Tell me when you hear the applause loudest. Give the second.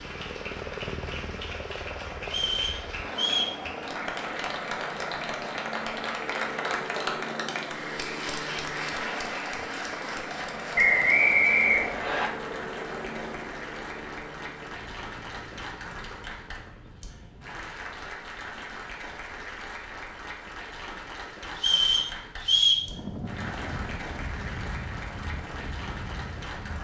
7 s.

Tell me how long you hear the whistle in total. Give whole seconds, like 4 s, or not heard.
4 s.